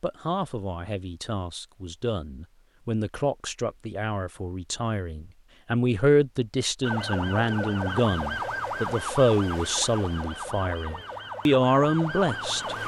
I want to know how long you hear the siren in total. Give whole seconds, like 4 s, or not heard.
6 s.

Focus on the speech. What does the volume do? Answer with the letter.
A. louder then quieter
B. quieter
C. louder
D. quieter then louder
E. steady
C.